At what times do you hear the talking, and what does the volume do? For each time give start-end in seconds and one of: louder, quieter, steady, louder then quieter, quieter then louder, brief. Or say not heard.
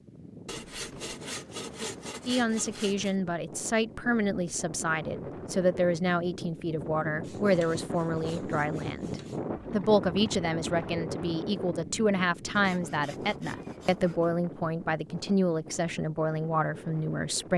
2.2-17.5 steady.